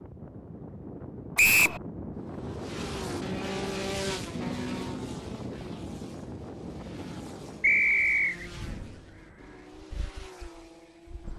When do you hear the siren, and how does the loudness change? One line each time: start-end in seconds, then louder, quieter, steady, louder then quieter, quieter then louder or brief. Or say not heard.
not heard.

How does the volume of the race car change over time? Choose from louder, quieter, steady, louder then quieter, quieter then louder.
quieter.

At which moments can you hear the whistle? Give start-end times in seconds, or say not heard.
1.4-1.8, 7.6-8.4.